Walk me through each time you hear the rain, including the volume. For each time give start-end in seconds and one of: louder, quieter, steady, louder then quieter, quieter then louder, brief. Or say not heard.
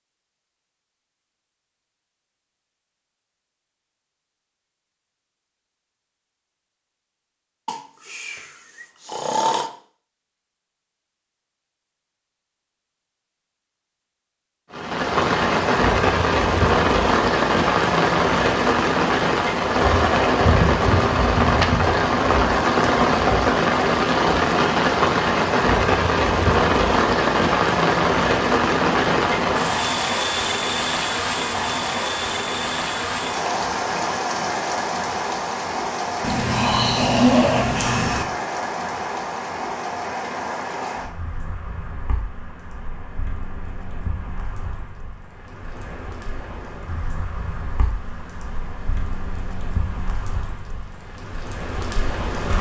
14.7-52.5 quieter.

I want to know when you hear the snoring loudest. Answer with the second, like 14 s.
37 s.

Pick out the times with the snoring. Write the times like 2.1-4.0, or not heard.
7.7-9.7, 36.2-38.2.